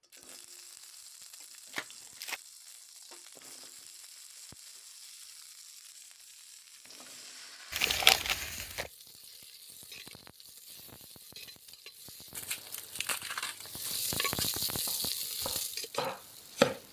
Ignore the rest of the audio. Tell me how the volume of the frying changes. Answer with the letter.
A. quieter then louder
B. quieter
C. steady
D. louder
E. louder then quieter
D.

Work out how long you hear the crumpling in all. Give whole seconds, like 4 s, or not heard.
4 s.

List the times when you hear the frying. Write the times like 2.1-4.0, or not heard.
0.0-16.8.